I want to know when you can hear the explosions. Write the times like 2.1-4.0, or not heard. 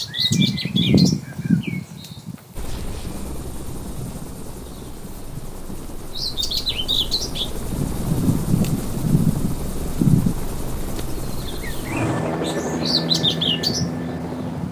not heard.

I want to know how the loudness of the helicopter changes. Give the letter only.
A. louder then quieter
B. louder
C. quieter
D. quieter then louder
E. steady
B.